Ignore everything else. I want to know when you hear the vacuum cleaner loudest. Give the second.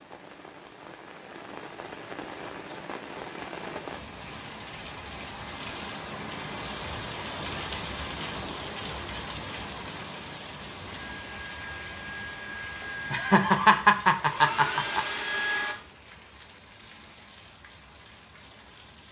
15 s.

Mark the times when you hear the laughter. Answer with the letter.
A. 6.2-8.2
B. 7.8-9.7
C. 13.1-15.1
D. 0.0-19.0
C.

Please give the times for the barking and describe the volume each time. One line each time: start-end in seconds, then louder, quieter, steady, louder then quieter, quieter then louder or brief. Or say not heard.
not heard.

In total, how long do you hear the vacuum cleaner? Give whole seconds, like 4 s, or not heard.
5 s.